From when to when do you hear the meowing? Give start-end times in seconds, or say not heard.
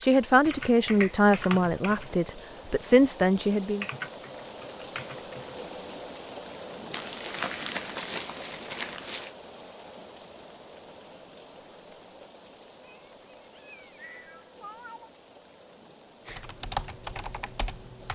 12.8-15.1.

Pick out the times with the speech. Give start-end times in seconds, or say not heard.
0.0-3.9.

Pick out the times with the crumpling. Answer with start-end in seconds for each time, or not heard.
6.9-9.3.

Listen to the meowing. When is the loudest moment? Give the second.
15 s.